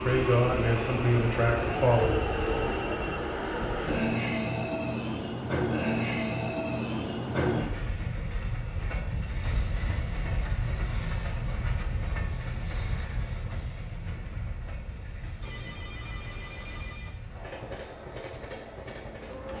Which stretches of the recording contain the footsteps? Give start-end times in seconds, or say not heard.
not heard.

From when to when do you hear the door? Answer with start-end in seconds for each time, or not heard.
not heard.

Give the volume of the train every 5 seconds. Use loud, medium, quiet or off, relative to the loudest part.
loud, loud, medium, quiet.